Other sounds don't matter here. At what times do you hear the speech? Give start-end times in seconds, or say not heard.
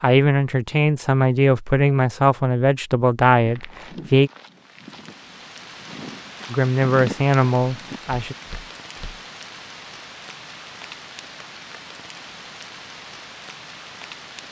0.0-4.3, 6.5-8.3.